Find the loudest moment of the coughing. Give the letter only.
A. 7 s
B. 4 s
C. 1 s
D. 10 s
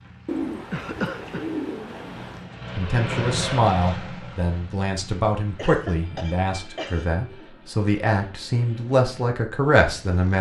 C.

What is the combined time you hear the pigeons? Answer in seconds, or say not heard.
4 s.